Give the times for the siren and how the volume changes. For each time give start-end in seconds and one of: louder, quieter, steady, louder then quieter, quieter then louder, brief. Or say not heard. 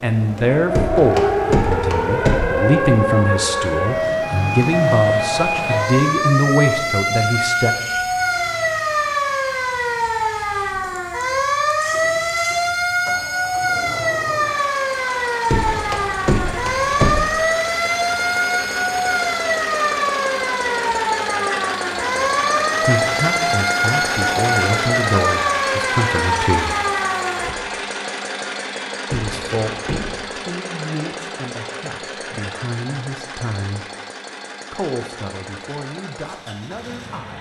0.1-27.6 steady.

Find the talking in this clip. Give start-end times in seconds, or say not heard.
0.0-7.8, 22.8-26.8, 29.1-33.9, 34.7-37.3.